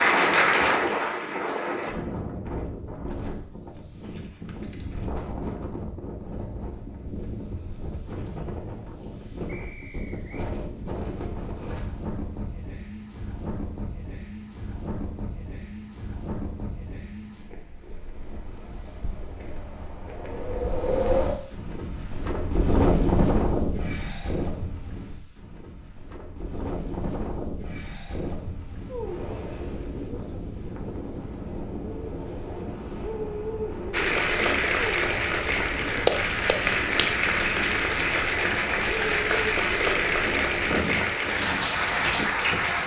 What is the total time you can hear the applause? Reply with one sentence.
You can hear the applause for 11 seconds altogether.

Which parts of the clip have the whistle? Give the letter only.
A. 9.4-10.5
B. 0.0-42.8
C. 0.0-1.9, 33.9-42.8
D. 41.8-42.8
A.